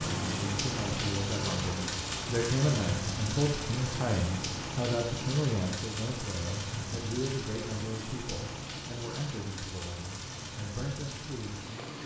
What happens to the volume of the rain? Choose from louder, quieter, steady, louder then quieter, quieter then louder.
quieter.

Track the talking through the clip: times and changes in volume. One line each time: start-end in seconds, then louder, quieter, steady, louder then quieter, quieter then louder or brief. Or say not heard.
0.1-12.0 quieter.